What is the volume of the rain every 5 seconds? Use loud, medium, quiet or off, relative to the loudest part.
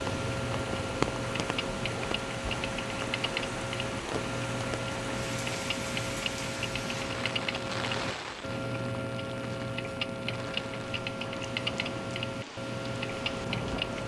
loud, loud, medium.